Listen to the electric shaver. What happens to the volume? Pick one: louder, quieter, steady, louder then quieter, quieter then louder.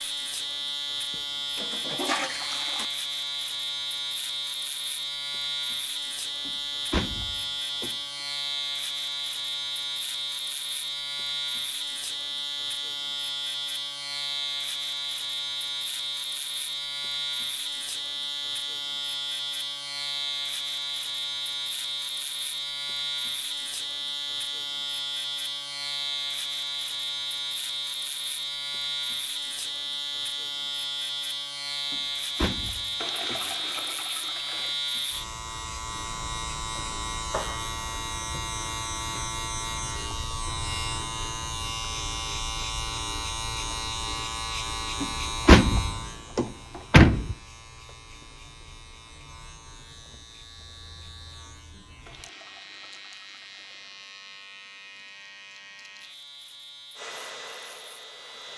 quieter.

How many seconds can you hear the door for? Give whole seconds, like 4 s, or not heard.
5 s.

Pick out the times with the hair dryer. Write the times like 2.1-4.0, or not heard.
57.0-58.5.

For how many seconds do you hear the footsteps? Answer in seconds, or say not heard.
not heard.